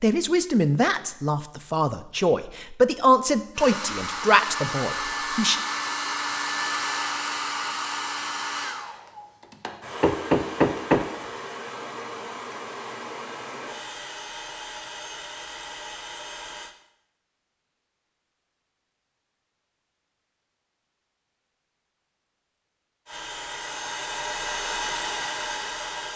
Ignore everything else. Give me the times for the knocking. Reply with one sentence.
You can hear the knocking from 10.0 to 11.1 s.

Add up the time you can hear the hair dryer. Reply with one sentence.
You can hear the hair dryer for 16 seconds altogether.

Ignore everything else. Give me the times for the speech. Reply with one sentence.
You can hear the speech from 0.0 to 5.6 s.